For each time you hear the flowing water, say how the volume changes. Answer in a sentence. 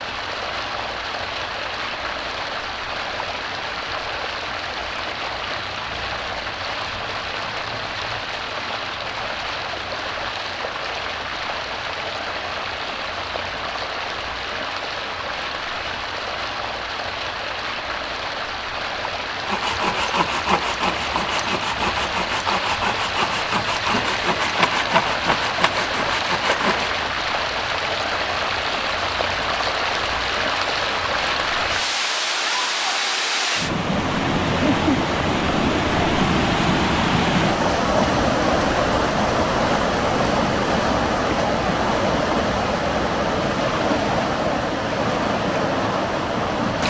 The flowing water can be heard from 0.0 to 46.8 s, getting louder.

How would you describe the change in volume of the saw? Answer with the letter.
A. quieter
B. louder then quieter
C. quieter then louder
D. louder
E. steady
E.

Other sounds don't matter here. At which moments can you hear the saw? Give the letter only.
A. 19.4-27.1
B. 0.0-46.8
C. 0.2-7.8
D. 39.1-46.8
A.